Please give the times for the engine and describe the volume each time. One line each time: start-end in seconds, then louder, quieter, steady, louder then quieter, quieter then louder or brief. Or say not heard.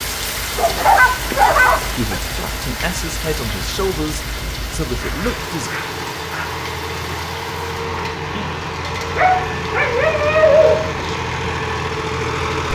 0.0-12.6 louder.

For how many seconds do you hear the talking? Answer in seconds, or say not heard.
4 s.